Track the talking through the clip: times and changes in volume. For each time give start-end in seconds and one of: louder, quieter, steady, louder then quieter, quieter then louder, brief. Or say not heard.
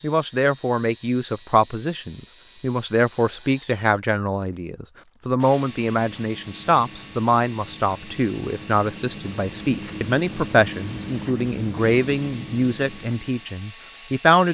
0.0-14.4 steady.